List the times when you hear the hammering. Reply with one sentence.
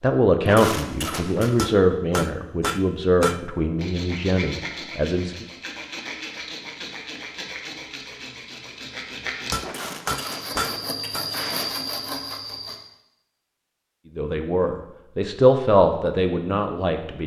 The hammering can be heard from 1.6 to 3.5 s and from 9.5 to 11.2 s.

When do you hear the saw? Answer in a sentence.
The saw can be heard from 3.8 to 12.8 s.